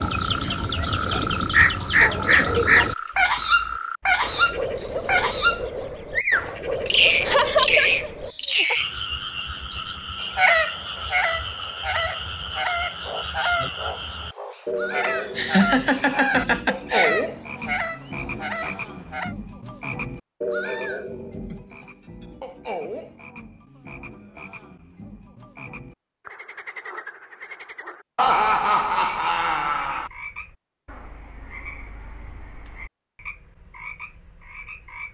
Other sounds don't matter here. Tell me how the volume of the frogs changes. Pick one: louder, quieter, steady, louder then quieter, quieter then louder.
quieter.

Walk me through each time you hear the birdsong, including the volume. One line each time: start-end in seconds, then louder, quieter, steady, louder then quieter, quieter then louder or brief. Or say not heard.
0.0-19.4 quieter.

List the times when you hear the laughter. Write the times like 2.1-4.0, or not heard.
7.2-8.8, 15.3-17.1, 28.1-30.1.